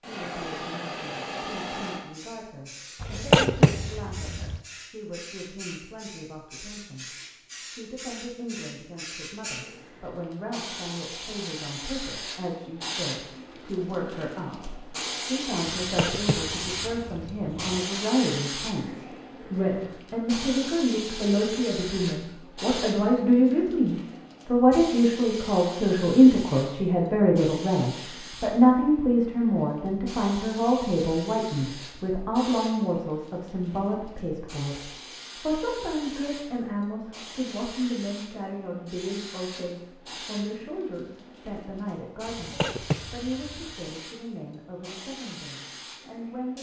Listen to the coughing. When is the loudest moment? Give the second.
3 s.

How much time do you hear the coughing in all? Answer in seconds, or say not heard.
5 s.